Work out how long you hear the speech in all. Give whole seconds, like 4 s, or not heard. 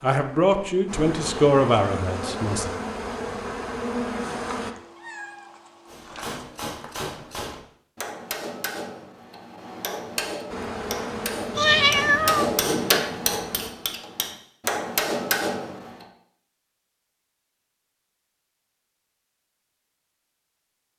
3 s.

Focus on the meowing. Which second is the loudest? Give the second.
12 s.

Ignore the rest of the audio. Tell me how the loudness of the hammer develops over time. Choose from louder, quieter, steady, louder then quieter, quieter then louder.
louder.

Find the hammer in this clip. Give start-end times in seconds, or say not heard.
5.8-16.1.